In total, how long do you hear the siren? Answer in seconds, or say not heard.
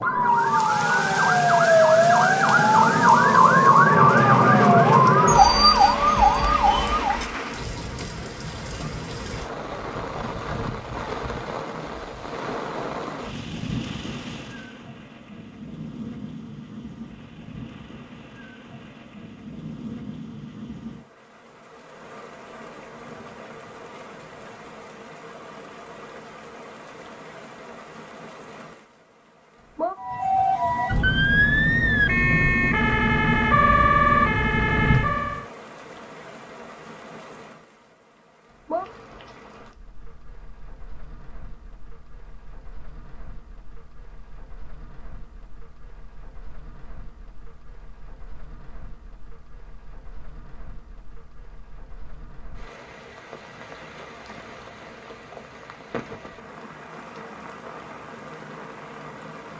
13 s.